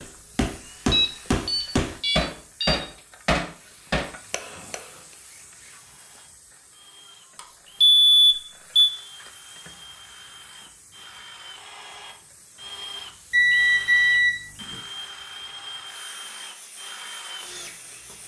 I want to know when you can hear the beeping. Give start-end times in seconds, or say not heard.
0.9-2.8, 7.3-8.9, 13.3-14.8.